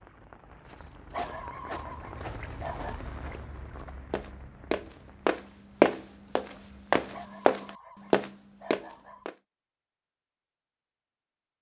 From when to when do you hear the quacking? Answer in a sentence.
The quacking can't be heard in this clip.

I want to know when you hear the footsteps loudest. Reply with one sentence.
The loudest moment of the footsteps is at 6 seconds.